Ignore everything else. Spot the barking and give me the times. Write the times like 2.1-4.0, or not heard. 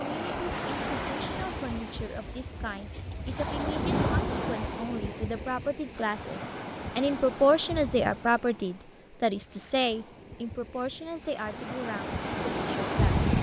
not heard.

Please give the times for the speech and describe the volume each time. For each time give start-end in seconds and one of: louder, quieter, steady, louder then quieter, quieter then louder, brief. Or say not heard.
0.0-13.2 louder then quieter.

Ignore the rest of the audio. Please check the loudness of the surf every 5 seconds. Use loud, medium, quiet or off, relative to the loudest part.
loud, medium, loud.